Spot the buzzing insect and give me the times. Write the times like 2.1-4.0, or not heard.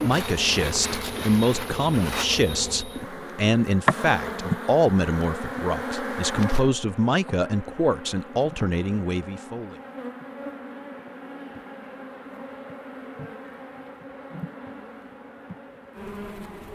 0.0-16.7.